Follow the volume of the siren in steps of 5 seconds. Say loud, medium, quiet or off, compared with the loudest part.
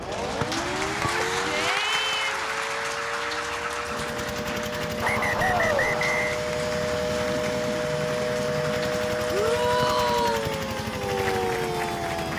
medium, loud, loud.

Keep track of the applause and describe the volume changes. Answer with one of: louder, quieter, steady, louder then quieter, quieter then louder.
quieter.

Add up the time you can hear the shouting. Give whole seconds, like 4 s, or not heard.
3 s.